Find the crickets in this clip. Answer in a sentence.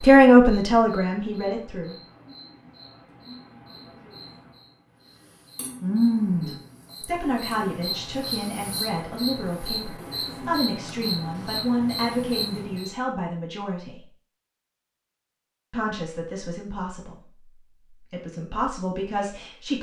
You can hear the crickets from 0.0 to 12.9 s.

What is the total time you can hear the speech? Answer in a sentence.
The speech can be heard for 13 seconds in total.